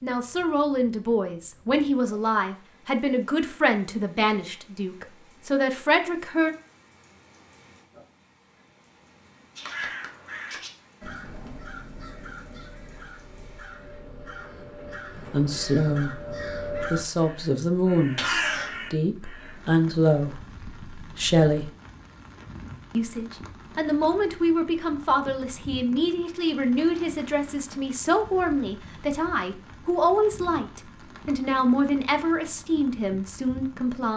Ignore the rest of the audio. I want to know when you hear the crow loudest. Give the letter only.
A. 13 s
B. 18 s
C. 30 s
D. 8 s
B.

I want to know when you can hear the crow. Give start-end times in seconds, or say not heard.
9.6-19.6.